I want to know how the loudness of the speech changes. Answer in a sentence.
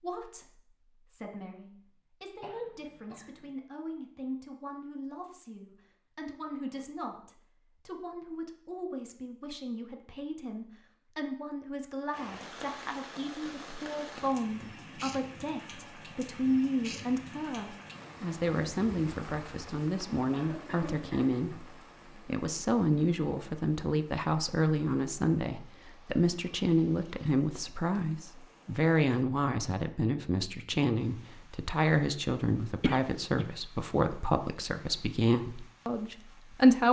The loudness of the speech goes up.